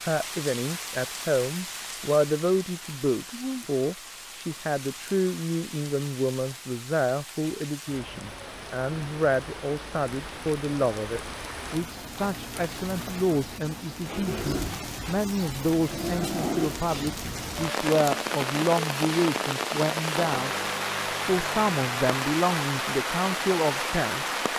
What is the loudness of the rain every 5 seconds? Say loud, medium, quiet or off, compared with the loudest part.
medium, quiet, medium, loud, loud.